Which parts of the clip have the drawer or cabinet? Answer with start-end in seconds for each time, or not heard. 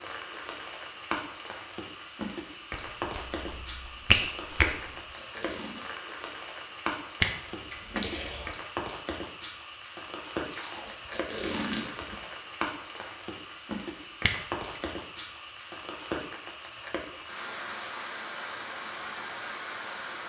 not heard.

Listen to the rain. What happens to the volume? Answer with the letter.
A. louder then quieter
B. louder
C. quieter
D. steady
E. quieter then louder
D.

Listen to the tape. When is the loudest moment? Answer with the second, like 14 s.
12 s.